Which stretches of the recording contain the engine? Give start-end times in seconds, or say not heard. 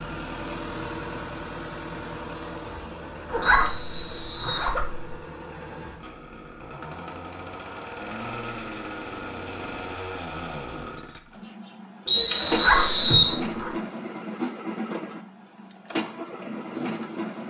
0.0-17.4.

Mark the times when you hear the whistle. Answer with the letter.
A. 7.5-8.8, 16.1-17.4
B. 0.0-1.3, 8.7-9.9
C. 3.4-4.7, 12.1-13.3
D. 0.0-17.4
C.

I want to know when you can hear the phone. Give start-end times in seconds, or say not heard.
not heard.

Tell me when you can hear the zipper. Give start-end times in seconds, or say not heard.
3.3-5.1, 12.4-13.8.